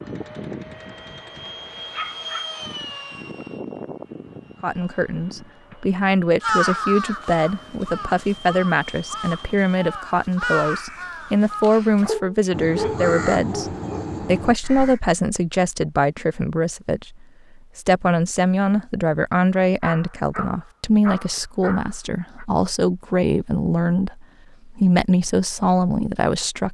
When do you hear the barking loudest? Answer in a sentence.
The volume of the barking peaks at 13 seconds.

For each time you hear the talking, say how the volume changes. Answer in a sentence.
The talking can be heard from 4.6 to 26.6 s, at a steady volume.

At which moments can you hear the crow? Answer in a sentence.
The crow can be heard from 6.4 to 15.0 s.